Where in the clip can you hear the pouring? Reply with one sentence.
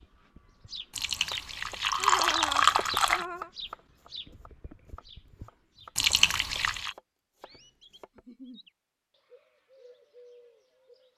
You can hear the pouring from 0.9 to 3.2 s and from 6.0 to 7.0 s.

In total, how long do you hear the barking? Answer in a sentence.
The barking can't be heard in this clip.